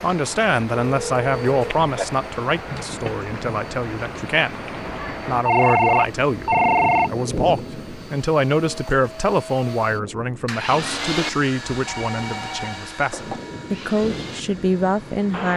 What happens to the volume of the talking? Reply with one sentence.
The loudness of the talking stays about the same.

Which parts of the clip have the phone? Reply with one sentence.
The phone can be heard from 0.8 to 2.0 s, from 5.5 to 7.1 s and from 11.8 to 13.4 s.